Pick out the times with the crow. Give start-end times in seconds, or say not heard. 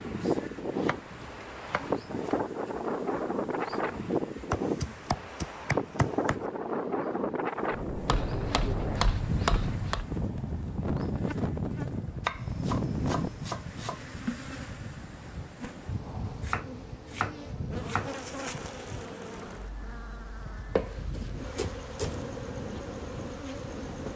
not heard.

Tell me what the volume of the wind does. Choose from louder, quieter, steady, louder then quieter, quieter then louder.
quieter.